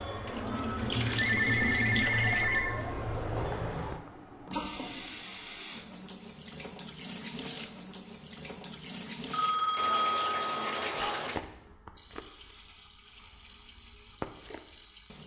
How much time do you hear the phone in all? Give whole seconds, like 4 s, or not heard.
3 s.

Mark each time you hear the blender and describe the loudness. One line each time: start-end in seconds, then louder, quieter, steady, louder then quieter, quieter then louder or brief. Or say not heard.
not heard.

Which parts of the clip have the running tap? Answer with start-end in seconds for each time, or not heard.
0.0-15.2.